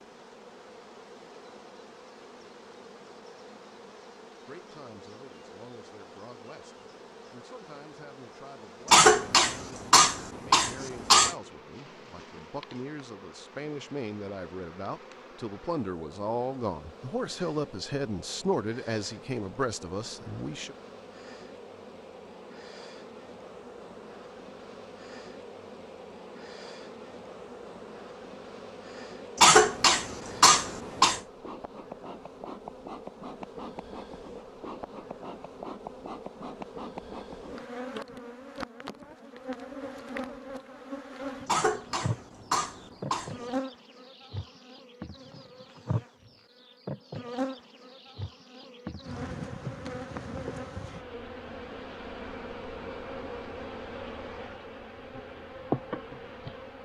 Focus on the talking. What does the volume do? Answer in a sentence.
The volume of the talking goes up.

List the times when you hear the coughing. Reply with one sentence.
The coughing can be heard from 8.8 to 11.3 s, from 29.4 to 31.2 s and from 41.5 to 43.5 s.